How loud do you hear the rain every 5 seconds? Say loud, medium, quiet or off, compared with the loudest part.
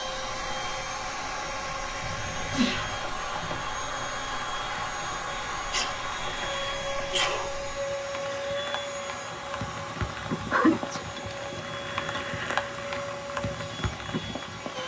quiet, medium, loud.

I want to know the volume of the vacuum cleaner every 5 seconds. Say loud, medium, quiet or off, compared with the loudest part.
loud, loud, medium.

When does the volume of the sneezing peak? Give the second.
11 s.